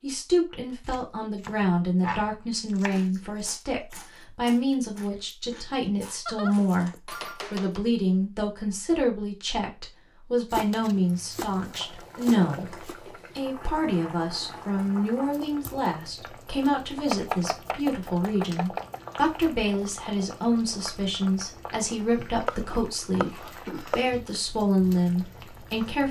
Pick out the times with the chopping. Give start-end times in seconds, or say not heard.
0.8-3.0, 6.2-7.8, 10.5-12.9, 17.1-19.0, 22.4-24.0.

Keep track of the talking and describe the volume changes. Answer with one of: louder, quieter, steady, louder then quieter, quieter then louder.
steady.